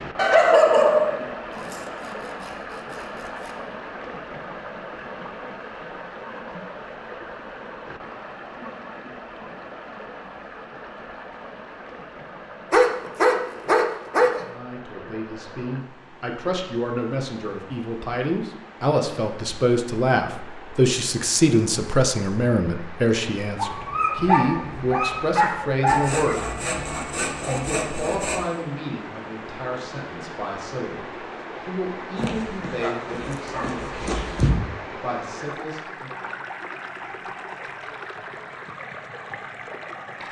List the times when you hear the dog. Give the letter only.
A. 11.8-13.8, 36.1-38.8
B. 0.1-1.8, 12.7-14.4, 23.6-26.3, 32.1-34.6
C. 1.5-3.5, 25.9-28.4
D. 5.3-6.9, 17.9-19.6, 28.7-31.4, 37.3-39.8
B.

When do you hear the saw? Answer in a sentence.
You can hear the saw from 1.5 to 3.5 s and from 25.9 to 28.4 s.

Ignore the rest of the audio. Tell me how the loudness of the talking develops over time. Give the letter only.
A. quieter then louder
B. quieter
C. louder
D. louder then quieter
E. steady
D.